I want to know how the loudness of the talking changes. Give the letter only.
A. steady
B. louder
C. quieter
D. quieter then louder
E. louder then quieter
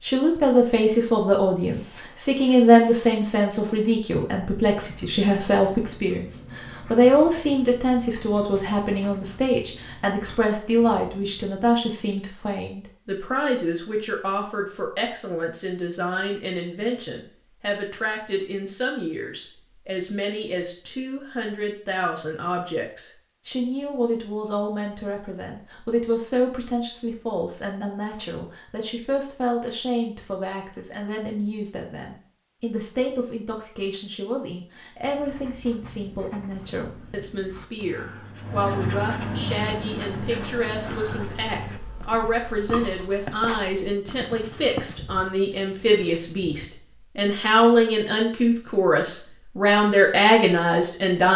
D.